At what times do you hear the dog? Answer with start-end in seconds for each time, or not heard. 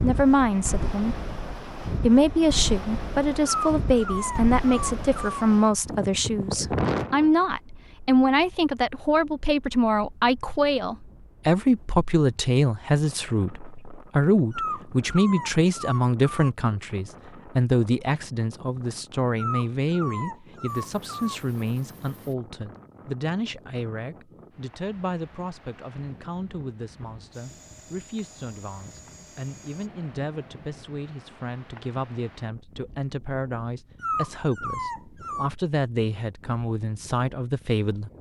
3.5-5.5, 14.5-16.5, 19.4-21.4, 34.0-35.5.